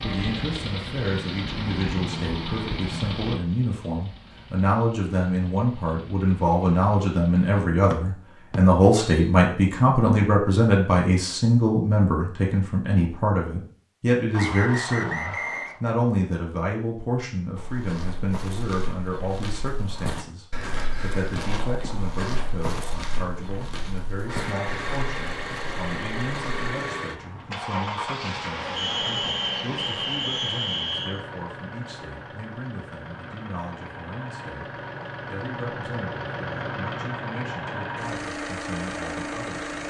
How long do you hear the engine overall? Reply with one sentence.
The engine can be heard for 23 seconds in total.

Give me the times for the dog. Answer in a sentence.
You can't hear the dog here.